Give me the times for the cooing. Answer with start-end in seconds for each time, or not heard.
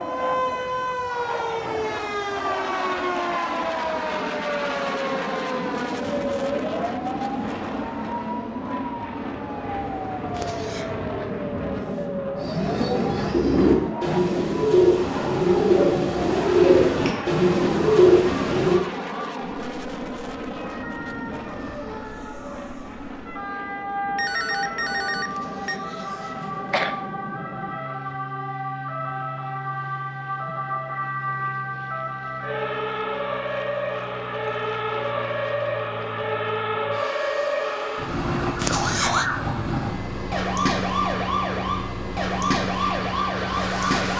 12.4-18.8.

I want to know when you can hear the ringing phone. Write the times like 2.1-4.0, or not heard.
24.1-25.8.